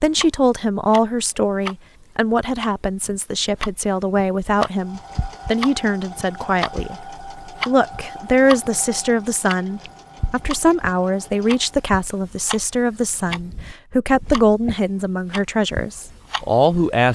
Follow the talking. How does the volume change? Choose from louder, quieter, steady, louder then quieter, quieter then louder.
steady.